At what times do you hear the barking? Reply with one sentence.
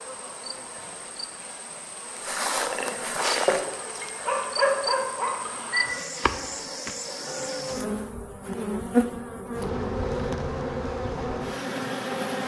You can hear the barking from 3.2 to 6.0 s.